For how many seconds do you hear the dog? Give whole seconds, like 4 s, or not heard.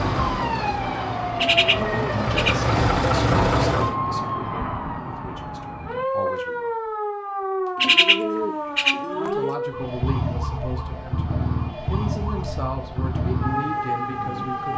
not heard.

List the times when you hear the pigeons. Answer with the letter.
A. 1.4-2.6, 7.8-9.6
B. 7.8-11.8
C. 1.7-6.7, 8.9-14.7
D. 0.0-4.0
A.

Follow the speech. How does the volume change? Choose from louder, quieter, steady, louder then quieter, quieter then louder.
quieter then louder.